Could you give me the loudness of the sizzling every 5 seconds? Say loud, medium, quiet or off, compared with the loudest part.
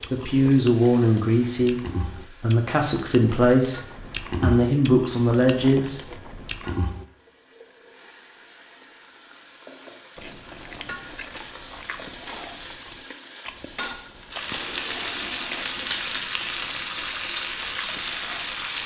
quiet, quiet, medium, loud.